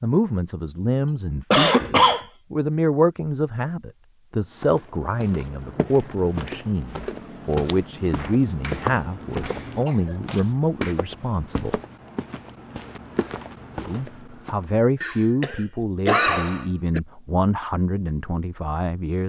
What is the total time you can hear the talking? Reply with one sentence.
You can hear the talking for 17 seconds altogether.